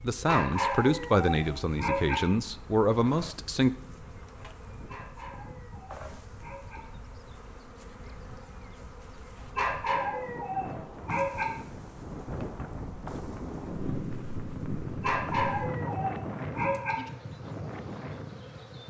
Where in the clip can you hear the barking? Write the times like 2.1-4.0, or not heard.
0.2-2.1, 4.8-6.8, 9.6-11.4, 15.0-16.9.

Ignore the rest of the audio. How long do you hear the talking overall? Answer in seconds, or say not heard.
4 s.